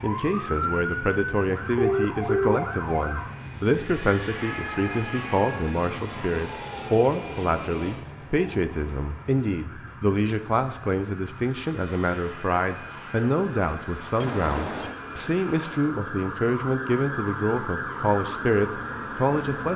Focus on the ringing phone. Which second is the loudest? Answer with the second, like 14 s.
2 s.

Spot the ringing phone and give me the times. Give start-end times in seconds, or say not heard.
1.8-2.6, 14.2-14.9.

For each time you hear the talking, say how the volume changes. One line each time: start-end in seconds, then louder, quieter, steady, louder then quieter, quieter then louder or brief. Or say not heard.
0.0-19.7 steady.